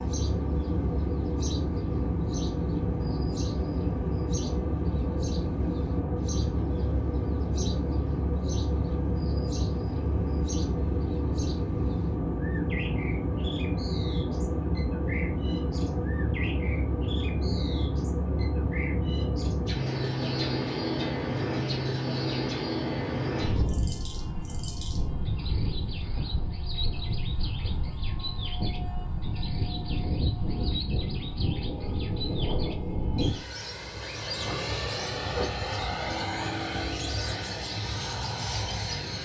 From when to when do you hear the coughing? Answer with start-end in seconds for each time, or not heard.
not heard.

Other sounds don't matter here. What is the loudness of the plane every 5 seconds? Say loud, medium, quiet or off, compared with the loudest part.
loud, loud, loud, loud, loud, medium, loud, loud.